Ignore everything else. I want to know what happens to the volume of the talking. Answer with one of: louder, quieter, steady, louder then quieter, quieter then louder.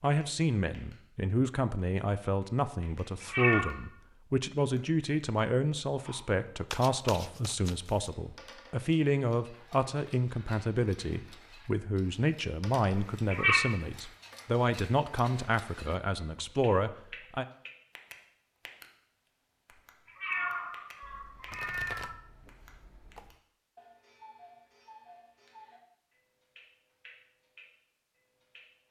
steady.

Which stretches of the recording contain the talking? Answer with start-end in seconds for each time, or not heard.
0.0-17.4.